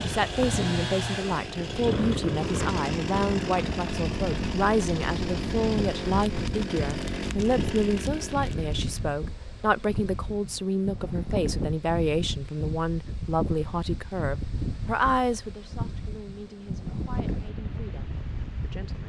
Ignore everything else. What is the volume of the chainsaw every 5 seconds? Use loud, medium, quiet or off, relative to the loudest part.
loud, loud, off, off.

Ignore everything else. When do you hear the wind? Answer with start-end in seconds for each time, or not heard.
0.0-19.0.